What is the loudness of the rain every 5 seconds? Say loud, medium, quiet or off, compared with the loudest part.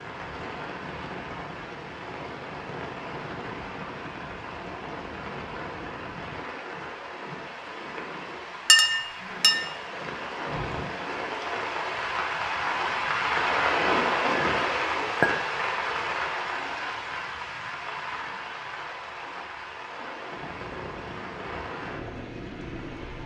medium, medium, loud, medium, medium.